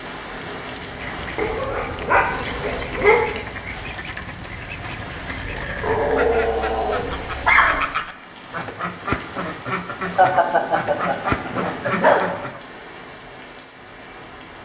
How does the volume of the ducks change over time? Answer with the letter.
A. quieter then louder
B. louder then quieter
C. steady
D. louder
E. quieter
D.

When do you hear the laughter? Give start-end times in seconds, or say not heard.
10.2-12.3.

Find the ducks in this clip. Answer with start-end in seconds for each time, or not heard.
0.8-12.6.